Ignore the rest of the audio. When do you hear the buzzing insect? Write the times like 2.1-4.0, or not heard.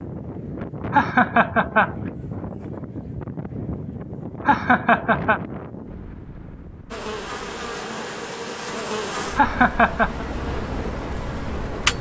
6.9-11.9.